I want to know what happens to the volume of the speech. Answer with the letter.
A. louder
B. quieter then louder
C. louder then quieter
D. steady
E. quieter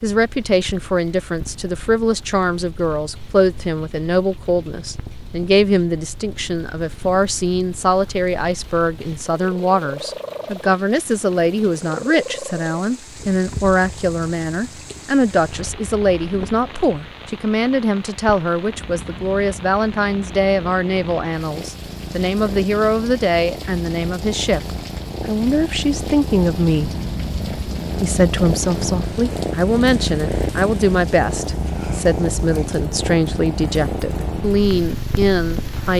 D.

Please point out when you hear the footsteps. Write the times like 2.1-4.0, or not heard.
not heard.